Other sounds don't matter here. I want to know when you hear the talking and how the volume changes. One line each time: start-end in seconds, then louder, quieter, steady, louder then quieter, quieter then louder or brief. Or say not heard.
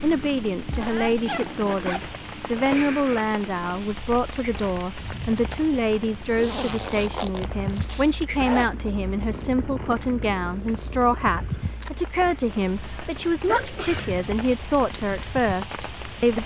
0.0-16.4 steady.